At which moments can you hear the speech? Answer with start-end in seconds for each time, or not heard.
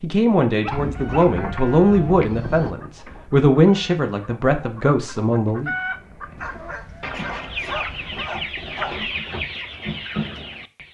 0.0-5.7.